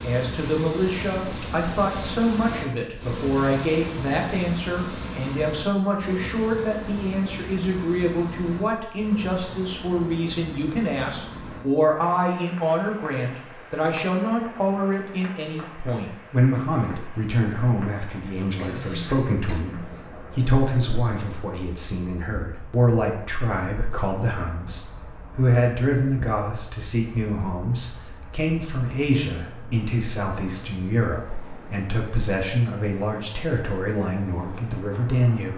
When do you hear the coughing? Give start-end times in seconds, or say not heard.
18.6-20.0.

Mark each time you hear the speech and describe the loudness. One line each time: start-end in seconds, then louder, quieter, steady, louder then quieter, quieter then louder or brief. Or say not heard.
0.0-35.5 steady.